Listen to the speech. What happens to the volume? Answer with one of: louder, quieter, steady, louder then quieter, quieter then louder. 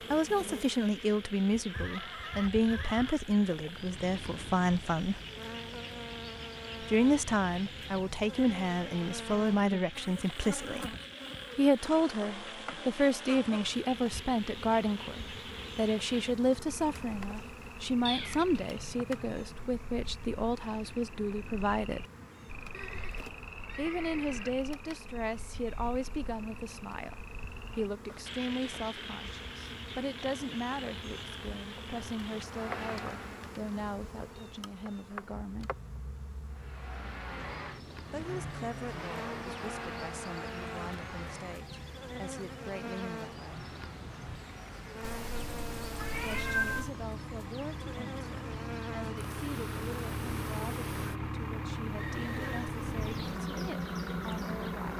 quieter.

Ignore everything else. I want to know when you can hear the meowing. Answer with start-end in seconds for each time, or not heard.
18.1-19.4, 45.0-46.9.